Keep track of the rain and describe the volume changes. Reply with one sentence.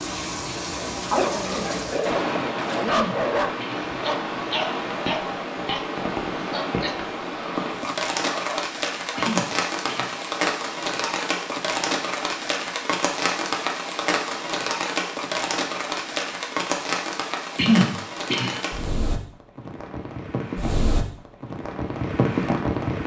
The loudness of the rain stays about the same.